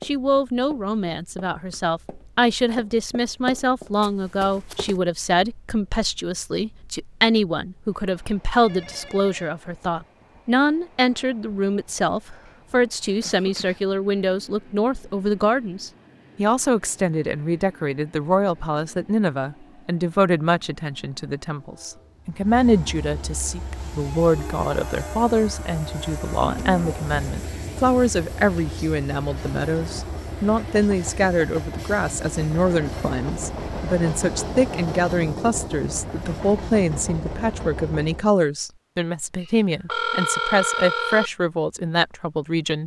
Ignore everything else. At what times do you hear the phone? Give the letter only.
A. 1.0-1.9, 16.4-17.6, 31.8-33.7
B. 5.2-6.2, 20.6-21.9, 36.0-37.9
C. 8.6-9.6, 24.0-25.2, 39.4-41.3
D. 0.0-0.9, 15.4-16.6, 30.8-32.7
C.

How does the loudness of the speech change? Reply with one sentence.
The volume of the speech stays about the same.